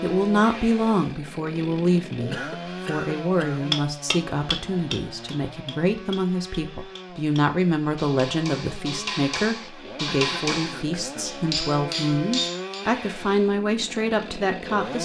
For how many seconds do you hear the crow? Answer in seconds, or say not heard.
not heard.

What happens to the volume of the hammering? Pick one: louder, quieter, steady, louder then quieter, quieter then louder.
quieter then louder.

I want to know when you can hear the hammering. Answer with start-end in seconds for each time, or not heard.
3.7-12.8.